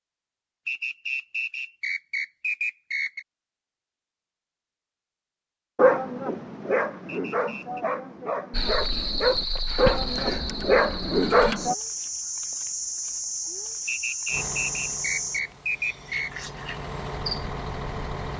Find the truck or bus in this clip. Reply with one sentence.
The truck or bus can be heard from 14.2 to 18.3 s.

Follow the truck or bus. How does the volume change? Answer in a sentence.
The loudness of the truck or bus goes down, then up.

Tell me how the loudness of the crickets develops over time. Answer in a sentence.
The loudness of the crickets goes down.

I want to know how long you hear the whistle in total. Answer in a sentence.
You can hear the whistle for 6 seconds altogether.